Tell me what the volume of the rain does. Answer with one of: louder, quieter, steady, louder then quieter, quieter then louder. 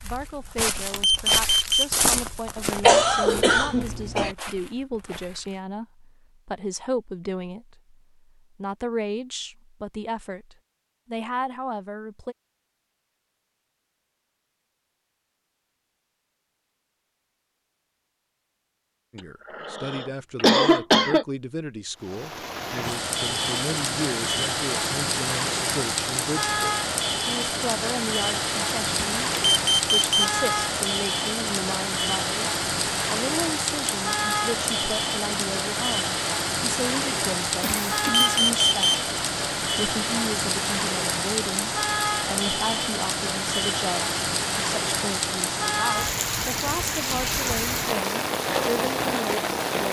steady.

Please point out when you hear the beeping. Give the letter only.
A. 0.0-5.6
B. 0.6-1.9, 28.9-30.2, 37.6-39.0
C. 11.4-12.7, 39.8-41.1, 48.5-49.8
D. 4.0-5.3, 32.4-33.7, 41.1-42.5
B.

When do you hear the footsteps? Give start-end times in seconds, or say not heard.
0.0-5.6.